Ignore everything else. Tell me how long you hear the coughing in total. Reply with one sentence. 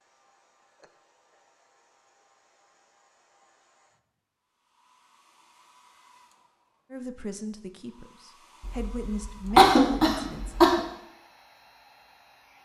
The coughing can be heard for 2 seconds in total.